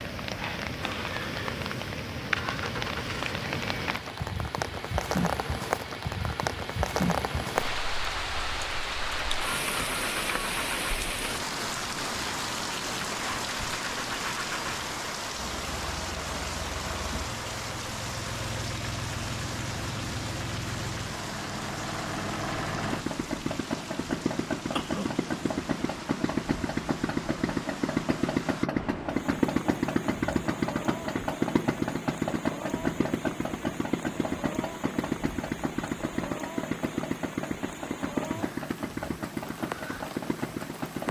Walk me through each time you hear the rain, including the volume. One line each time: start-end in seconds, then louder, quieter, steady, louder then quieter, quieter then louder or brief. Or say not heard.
0.0-41.0 quieter.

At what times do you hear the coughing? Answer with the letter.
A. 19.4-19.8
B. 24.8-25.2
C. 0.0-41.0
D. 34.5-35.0
B.